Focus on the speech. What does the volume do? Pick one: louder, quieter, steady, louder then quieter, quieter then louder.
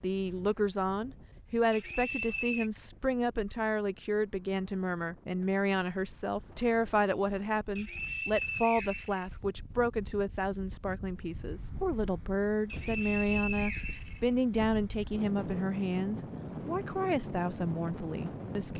steady.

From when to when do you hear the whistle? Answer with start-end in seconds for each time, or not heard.
1.7-2.7, 7.8-9.2, 12.7-14.7.